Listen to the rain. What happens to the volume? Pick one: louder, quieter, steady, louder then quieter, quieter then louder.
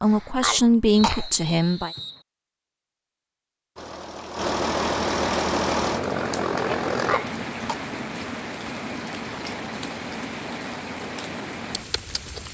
steady.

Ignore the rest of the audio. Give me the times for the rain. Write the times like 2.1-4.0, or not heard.
4.7-12.4.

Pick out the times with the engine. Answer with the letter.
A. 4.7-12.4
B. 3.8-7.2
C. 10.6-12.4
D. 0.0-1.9
B.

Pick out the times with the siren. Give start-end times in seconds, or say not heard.
not heard.